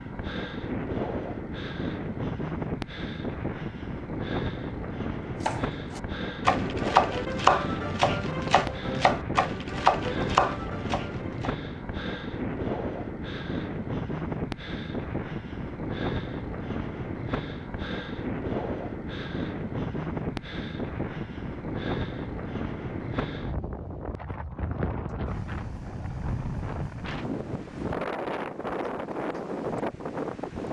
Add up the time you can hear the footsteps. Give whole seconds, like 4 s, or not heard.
not heard.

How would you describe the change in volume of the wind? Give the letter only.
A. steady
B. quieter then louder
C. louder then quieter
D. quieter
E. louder
A.